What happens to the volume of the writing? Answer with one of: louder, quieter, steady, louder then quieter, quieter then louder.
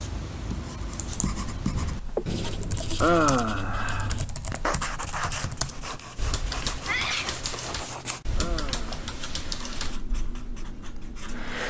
quieter.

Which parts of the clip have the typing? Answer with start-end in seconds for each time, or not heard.
0.9-11.0.